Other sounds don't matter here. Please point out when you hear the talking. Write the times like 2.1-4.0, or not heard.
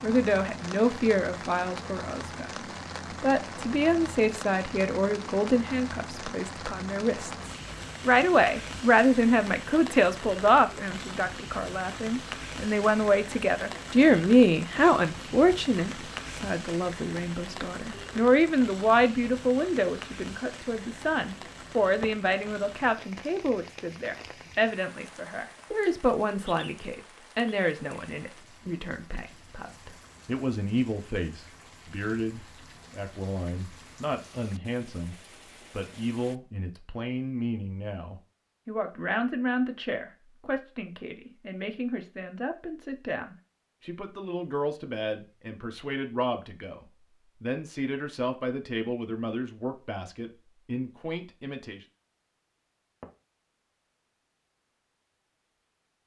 0.0-2.5, 3.2-51.9.